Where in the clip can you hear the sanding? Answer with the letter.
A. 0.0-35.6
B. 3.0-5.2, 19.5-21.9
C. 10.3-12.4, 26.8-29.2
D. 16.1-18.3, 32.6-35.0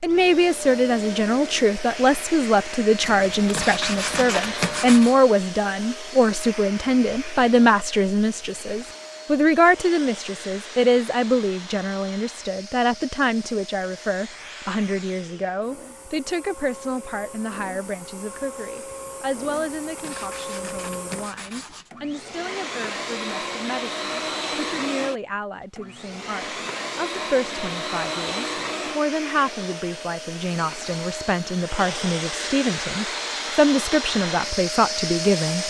B.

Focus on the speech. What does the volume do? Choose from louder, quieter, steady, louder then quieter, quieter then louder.
quieter then louder.